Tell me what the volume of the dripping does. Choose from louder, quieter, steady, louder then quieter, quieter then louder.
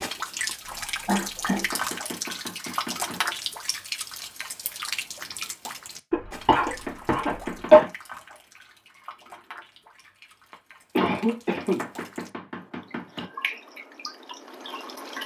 quieter then louder.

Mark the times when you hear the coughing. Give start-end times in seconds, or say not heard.
0.7-1.7, 6.1-7.8, 10.5-11.8.